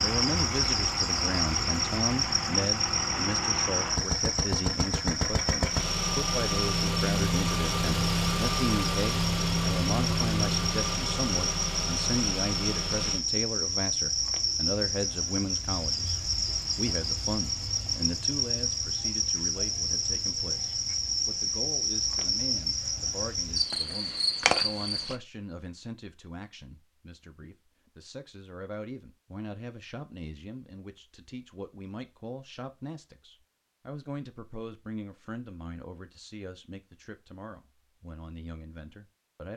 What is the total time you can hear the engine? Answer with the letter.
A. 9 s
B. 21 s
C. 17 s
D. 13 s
D.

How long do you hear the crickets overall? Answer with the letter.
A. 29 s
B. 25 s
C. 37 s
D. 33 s
B.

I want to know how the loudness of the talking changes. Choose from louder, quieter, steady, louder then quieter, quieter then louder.
quieter.